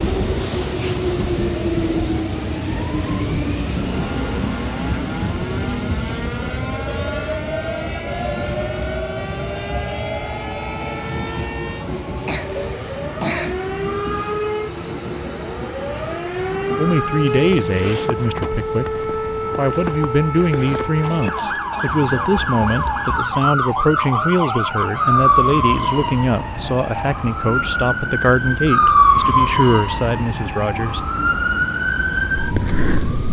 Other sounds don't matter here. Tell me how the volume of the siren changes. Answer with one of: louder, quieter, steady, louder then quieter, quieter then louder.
louder.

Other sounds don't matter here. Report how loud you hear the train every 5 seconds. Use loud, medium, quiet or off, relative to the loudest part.
loud, loud, medium, medium, quiet, quiet, quiet.